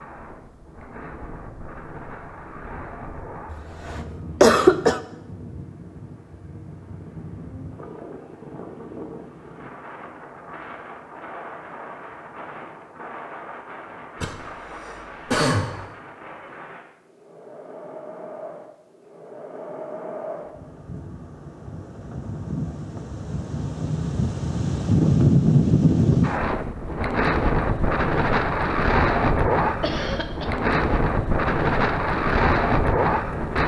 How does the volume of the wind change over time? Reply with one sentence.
The loudness of the wind goes up.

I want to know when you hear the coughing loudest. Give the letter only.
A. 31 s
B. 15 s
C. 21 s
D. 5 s
D.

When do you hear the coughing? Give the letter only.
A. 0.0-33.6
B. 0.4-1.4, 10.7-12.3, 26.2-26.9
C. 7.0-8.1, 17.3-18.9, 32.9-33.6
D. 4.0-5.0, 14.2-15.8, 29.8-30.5
D.